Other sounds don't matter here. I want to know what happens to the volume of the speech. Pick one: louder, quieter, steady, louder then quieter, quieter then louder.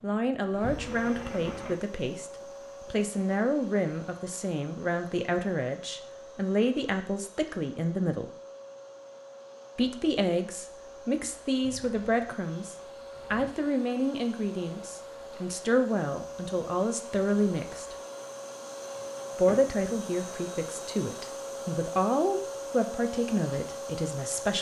steady.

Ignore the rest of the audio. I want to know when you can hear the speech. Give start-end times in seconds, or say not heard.
0.0-8.3, 9.8-17.9, 19.4-24.5.